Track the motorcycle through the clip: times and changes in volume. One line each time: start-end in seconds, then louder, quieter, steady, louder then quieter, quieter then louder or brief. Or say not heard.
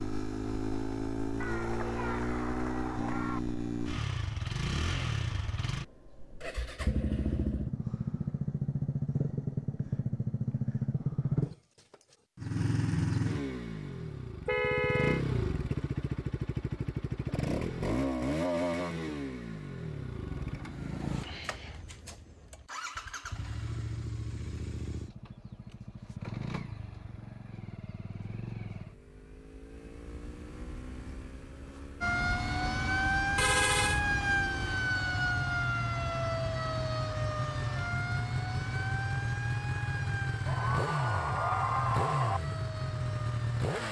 0.0-43.8 quieter then louder.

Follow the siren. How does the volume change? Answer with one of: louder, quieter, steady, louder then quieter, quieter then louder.
quieter.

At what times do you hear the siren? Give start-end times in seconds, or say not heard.
32.0-43.8.